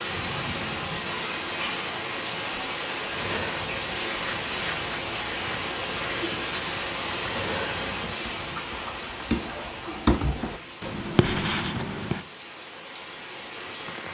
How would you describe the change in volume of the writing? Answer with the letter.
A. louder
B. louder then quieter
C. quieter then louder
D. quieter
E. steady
A.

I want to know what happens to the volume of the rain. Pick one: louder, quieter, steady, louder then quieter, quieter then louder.
quieter.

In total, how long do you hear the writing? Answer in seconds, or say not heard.
9 s.